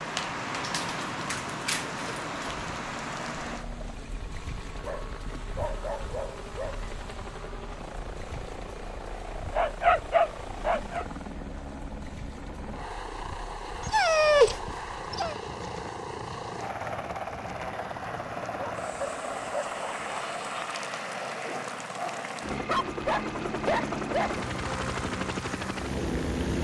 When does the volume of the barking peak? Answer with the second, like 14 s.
14 s.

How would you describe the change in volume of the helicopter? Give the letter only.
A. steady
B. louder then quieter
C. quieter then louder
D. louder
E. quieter
D.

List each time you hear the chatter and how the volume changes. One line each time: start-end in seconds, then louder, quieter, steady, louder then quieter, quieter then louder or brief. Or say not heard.
not heard.